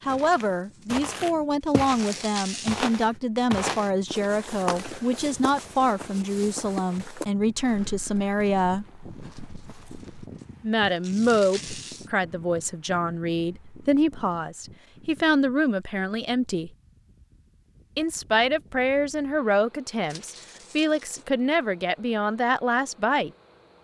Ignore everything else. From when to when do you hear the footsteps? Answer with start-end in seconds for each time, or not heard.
0.1-10.4.